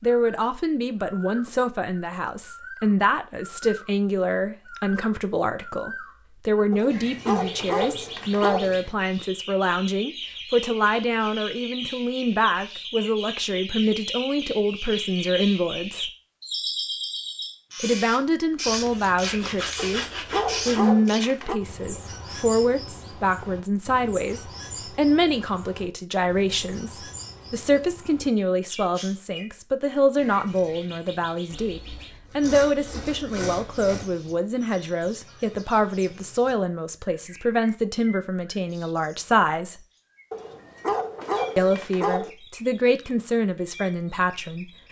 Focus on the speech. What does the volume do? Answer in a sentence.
The volume of the speech stays about the same.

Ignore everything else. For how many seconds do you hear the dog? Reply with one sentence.
The dog can be heard for 6 seconds in total.